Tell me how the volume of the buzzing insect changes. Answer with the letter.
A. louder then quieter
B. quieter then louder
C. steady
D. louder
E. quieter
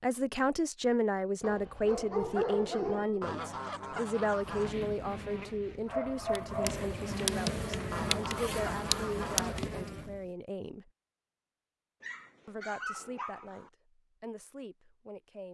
D.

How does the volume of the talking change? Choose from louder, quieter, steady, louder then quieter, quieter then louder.
quieter.